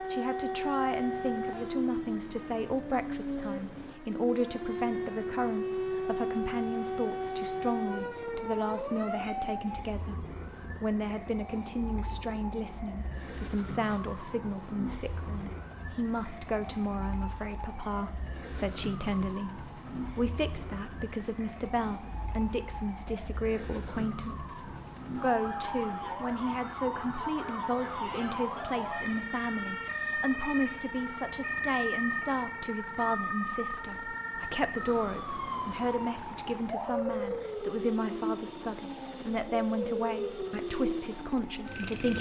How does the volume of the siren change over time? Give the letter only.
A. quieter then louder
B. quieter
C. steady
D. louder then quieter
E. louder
A.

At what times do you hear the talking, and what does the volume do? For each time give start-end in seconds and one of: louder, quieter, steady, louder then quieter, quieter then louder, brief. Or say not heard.
0.0-42.1 steady.